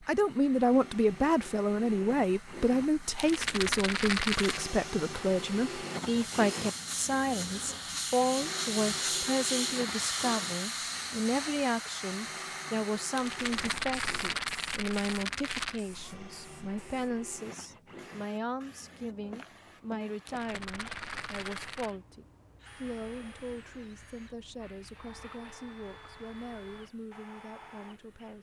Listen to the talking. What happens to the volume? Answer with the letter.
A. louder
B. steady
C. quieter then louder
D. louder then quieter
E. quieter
E.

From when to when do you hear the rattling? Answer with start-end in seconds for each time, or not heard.
3.1-4.7, 13.2-15.8, 20.2-21.9.